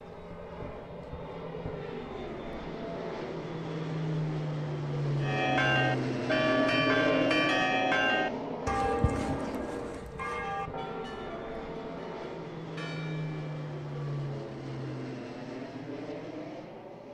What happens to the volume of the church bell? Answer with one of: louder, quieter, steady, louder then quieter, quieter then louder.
quieter.